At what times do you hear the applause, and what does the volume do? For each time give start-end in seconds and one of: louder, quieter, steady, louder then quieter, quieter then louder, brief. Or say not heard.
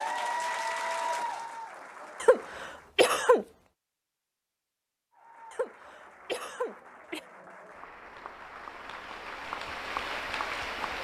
0.0-2.9 brief
5.1-10.9 louder.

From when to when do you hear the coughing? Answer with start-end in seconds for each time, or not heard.
2.2-3.5, 5.5-7.2.